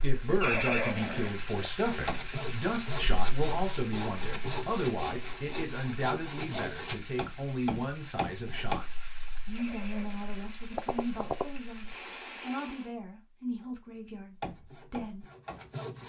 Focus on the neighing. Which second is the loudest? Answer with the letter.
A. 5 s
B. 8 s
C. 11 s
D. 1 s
D.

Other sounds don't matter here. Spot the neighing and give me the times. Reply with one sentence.
The neighing can be heard from 0.4 to 1.7 s and from 9.6 to 11.4 s.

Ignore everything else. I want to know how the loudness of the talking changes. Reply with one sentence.
The loudness of the talking goes down.